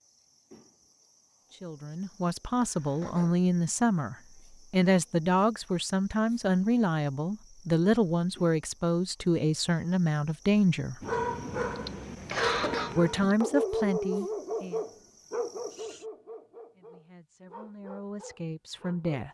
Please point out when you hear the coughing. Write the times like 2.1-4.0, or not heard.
11.8-13.4.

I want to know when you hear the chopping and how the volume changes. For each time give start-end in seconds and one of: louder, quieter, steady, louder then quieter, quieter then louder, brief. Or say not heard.
not heard.